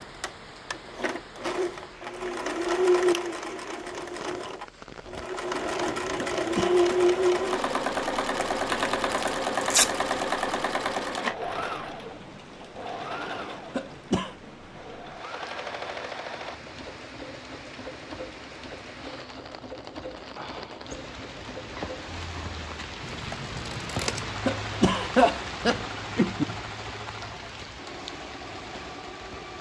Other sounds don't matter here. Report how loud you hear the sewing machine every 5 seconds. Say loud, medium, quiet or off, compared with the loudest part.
loud, loud, medium, quiet, quiet, quiet.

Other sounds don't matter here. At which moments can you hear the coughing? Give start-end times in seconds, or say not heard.
6.2-6.9, 13.8-14.3, 24.4-26.4.